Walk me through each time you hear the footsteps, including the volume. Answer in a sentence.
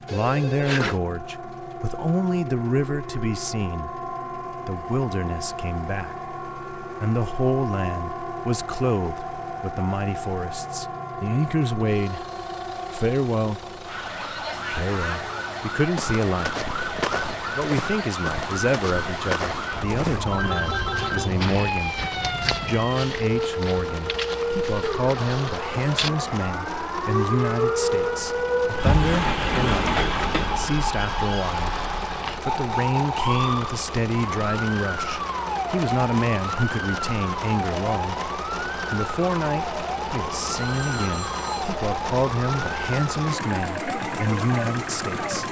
The footsteps can be heard from 15.9 to 26.1 s, getting quieter.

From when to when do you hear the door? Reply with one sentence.
You can hear the door from 28.8 to 30.8 s.